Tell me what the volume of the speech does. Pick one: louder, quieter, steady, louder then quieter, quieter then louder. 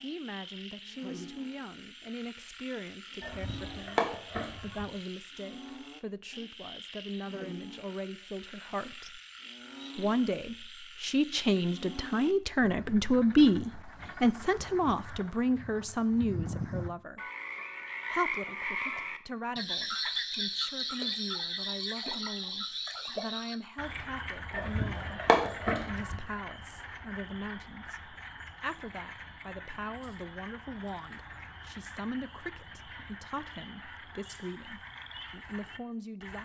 louder then quieter.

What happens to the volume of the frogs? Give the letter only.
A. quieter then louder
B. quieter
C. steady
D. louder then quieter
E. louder
D.